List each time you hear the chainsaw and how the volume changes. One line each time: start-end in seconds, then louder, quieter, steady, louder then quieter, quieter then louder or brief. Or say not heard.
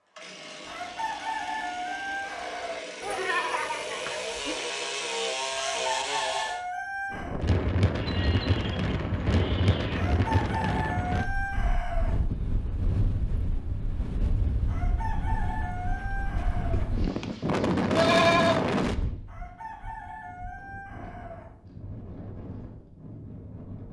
0.0-6.6 louder.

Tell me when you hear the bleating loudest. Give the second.
18 s.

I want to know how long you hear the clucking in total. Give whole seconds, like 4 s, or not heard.
11 s.